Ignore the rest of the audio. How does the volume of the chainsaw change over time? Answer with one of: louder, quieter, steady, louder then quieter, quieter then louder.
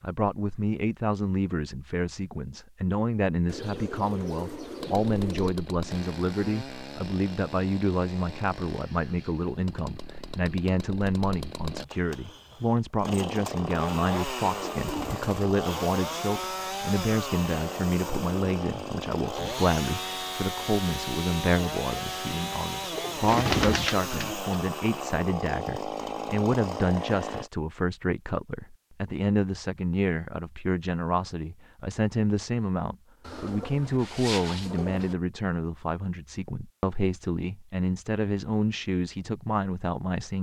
louder.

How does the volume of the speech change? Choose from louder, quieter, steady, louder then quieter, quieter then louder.
steady.